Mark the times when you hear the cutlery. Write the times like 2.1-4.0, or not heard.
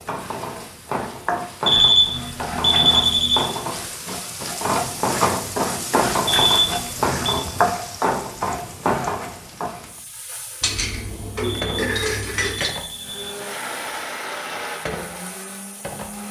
10.6-12.8.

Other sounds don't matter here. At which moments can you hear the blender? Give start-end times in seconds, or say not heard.
12.9-16.2.